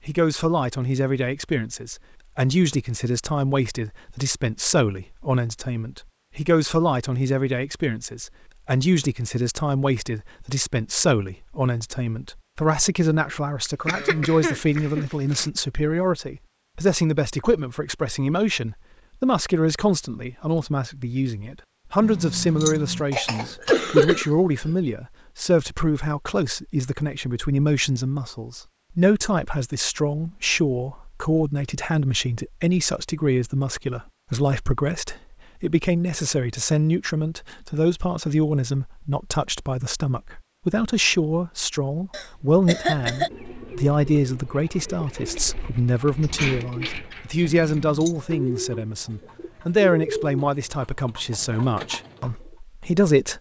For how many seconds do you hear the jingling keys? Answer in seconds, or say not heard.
2 s.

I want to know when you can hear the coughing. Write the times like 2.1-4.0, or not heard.
13.8-15.4, 23.1-24.7, 42.1-43.3.